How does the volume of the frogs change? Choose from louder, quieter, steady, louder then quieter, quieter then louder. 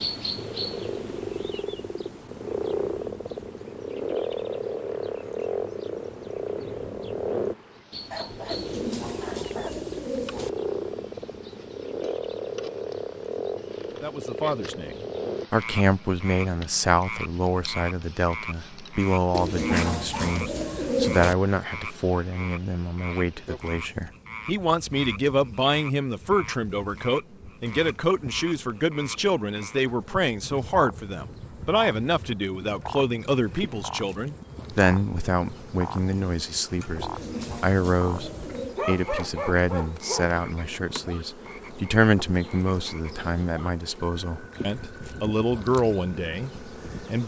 quieter.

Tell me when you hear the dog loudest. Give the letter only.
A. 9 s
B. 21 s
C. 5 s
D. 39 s
D.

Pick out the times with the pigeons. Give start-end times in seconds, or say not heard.
8.5-10.5, 19.3-21.4, 37.0-38.8.